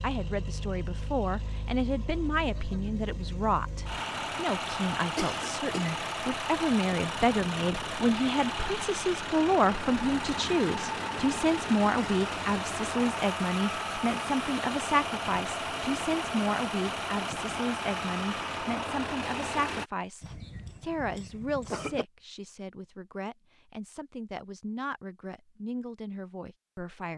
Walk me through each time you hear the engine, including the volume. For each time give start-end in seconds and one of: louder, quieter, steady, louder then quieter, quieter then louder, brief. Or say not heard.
0.0-19.9 louder.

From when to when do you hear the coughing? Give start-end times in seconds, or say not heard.
5.2-6.0, 20.2-22.1.